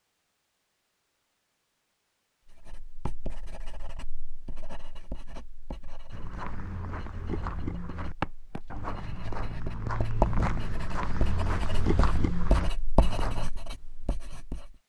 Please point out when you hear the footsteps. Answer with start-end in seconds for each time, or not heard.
6.1-13.5.